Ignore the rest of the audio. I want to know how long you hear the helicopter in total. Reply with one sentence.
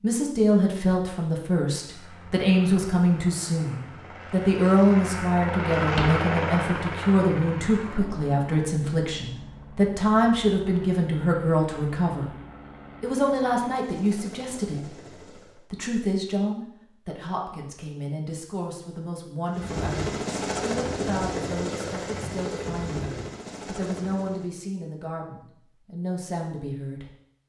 You can hear the helicopter for 19 seconds altogether.